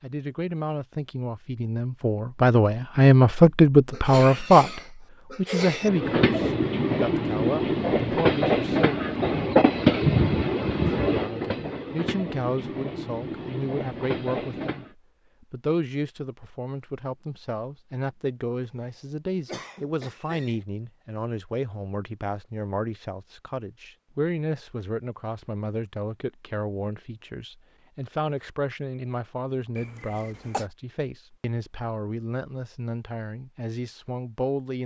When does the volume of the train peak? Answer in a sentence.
The volume of the train peaks at 10 seconds.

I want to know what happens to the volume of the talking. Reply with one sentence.
The loudness of the talking goes down.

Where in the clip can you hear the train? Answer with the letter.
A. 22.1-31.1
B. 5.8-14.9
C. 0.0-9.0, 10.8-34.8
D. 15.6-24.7
B.